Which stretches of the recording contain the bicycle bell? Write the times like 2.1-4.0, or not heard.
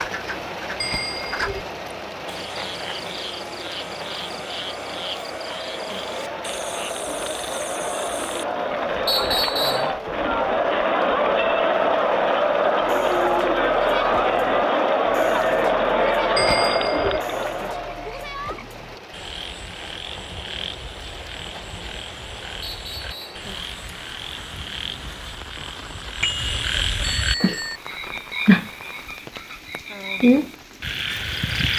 0.8-1.6, 16.4-17.2, 26.2-27.8.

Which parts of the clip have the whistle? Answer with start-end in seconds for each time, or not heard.
9.1-9.9, 22.6-23.4.